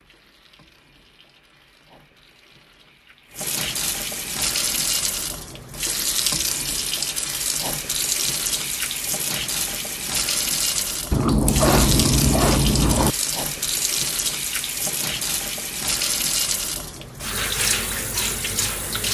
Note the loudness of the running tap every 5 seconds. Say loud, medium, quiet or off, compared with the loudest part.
medium, loud, loud, loud.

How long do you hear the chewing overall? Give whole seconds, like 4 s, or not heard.
2 s.